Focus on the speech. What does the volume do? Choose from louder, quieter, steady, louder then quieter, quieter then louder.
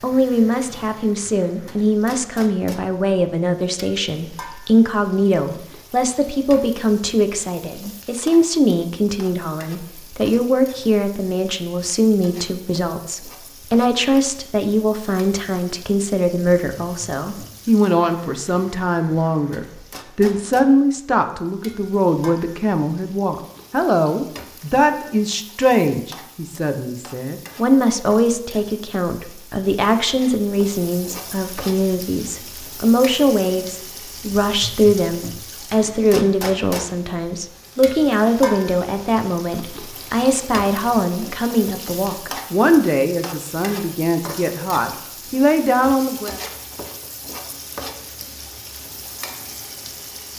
steady.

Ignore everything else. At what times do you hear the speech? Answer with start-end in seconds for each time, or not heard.
0.0-46.4.